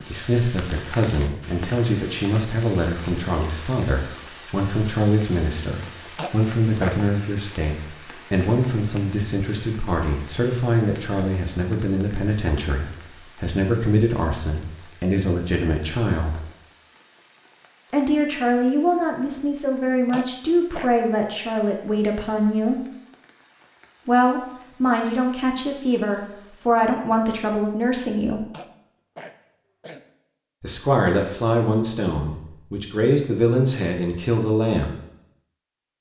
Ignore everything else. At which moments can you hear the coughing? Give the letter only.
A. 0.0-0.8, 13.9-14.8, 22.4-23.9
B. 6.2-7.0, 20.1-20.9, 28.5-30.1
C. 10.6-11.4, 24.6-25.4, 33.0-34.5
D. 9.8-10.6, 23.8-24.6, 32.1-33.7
B.